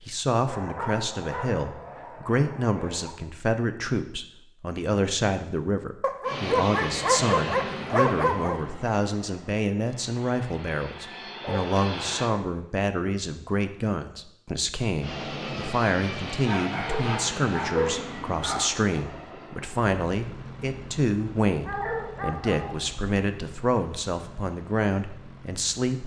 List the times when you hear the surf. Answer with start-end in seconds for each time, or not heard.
not heard.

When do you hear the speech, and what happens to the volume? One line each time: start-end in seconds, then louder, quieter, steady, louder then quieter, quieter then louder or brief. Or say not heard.
0.0-26.0 steady.